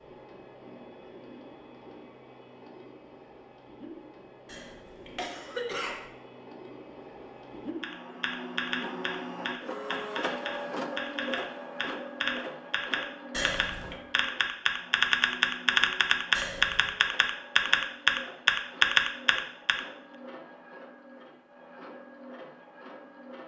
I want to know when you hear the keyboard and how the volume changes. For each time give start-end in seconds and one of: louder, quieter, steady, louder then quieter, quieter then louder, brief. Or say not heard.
7.8-19.8 louder.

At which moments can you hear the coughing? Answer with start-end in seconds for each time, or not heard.
4.5-6.1, 13.3-14.0, 16.3-16.9.